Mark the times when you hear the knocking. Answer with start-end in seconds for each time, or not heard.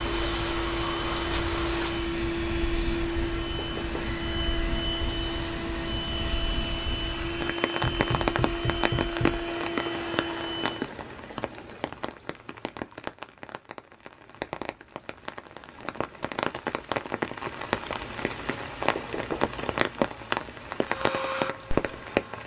3.5-4.0, 7.8-9.4, 18.9-19.5.